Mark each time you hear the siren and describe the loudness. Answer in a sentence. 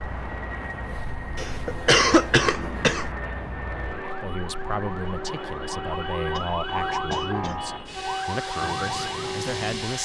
The siren can be heard from 0.0 to 10.0 s, getting louder.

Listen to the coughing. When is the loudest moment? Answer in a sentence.
The loudest moment of the coughing is at 2 seconds.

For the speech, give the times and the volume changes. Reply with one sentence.
You can hear the speech from 4.2 to 10.0 s, at a steady volume.